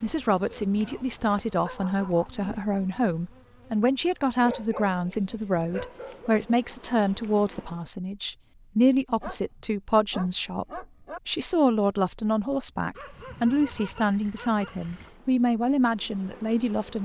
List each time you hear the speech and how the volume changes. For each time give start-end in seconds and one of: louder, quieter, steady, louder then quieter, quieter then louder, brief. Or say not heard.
0.0-16.9 steady.